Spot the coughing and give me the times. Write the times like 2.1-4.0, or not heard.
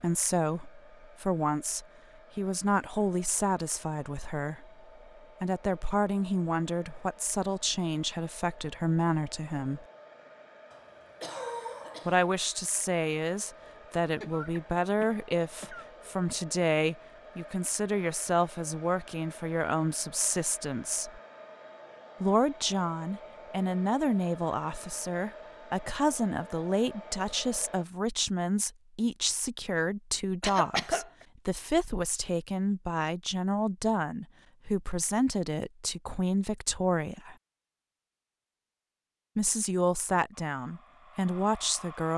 10.7-12.3, 14.2-15.9, 30.4-31.1.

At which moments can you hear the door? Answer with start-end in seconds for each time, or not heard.
not heard.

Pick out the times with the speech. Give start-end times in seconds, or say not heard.
0.0-9.8, 12.1-21.2, 22.2-37.4, 39.4-42.1.